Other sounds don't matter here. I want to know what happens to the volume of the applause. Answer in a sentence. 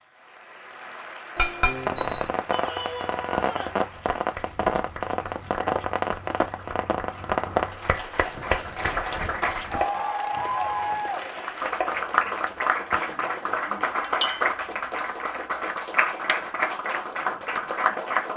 The volume of the applause goes up.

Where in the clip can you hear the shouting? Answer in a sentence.
The shouting can be heard from 2.5 to 3.9 s.